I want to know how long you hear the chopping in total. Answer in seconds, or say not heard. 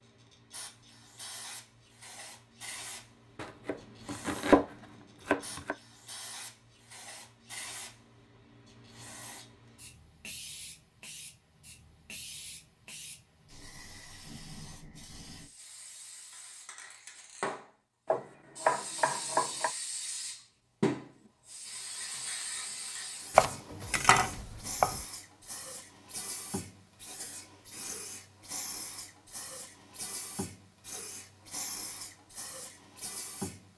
6 s.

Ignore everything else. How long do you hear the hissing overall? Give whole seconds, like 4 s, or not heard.
34 s.